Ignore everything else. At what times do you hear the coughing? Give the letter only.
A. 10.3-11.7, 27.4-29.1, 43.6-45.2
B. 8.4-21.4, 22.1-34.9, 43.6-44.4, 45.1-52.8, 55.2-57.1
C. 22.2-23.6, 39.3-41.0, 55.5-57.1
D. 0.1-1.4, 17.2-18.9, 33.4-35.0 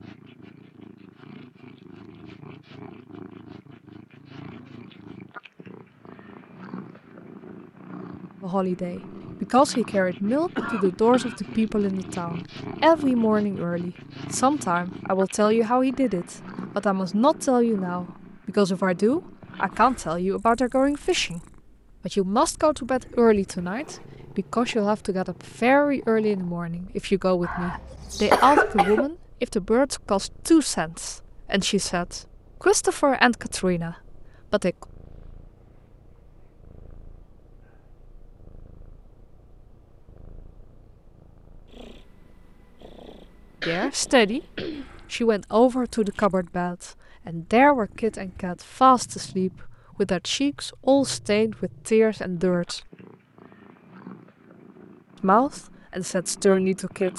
A.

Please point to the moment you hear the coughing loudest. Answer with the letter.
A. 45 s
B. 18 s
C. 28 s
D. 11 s
C.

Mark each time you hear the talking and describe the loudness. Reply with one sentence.
You can hear the talking from 8.4 to 21.4 s, at a steady volume; from 22.1 to 34.9 s, at a steady volume; briefly from 43.6 to 44.4 s; from 45.1 to 52.8 s, at a steady volume; and briefly from 55.2 to 57.1 s.